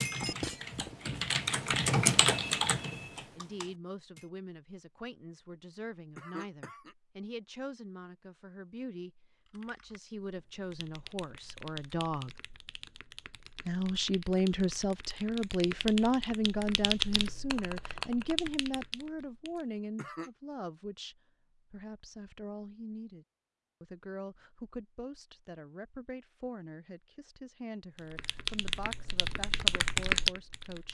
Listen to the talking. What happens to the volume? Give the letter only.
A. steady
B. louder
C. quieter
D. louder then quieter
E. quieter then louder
D.